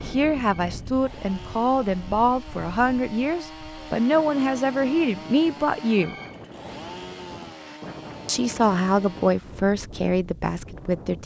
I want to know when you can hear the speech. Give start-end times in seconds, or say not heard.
0.0-6.2, 8.2-11.2.